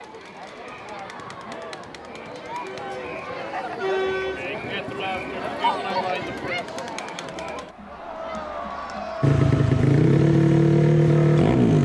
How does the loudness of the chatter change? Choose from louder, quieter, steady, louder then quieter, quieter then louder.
louder then quieter.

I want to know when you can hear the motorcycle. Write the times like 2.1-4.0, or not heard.
9.2-11.7.